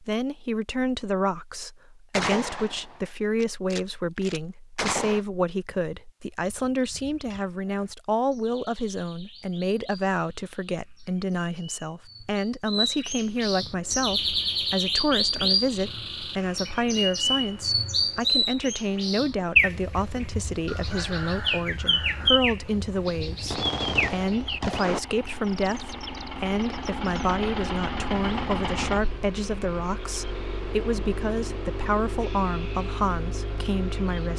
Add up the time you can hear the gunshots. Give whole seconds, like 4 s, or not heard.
5 s.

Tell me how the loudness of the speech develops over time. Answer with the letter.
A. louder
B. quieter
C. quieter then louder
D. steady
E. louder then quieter
D.